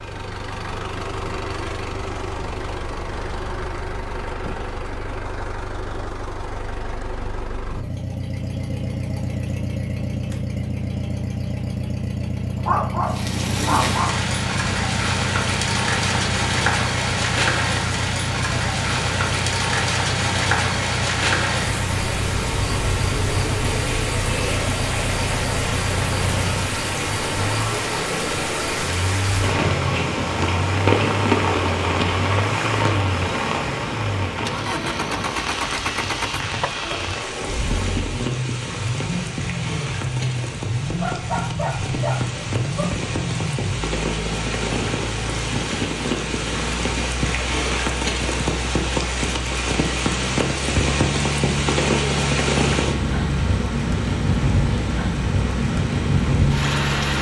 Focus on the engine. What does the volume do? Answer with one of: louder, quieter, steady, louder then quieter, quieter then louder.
steady.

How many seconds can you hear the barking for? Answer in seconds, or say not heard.
4 s.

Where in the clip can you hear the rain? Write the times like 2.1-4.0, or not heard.
13.1-57.1.